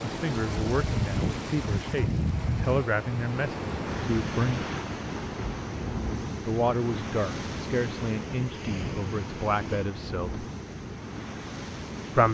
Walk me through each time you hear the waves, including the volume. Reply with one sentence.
You can hear the waves from 0.0 to 12.2 s, getting quieter.